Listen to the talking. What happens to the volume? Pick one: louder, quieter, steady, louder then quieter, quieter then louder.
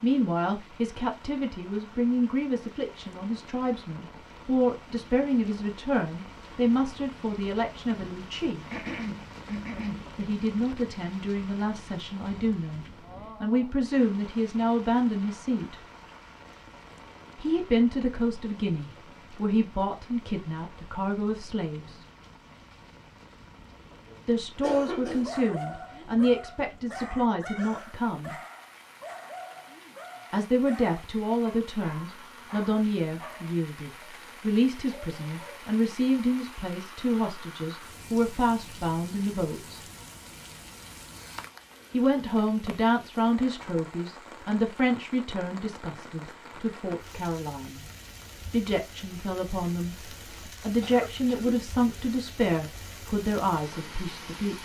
steady.